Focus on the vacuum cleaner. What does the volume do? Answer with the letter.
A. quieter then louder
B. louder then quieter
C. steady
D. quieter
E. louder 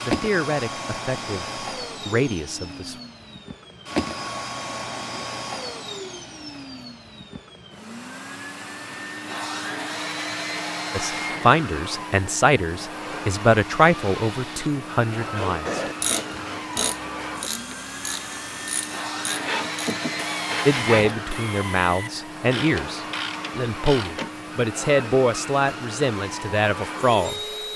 C.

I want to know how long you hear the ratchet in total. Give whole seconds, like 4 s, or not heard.
9 s.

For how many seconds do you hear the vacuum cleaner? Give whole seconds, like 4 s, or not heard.
28 s.